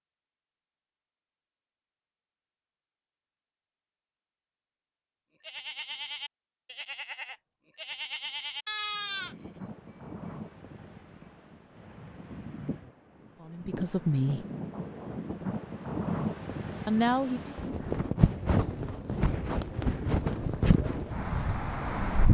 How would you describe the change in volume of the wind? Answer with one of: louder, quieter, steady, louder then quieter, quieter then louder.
louder.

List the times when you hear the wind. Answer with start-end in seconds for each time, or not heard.
8.9-22.2.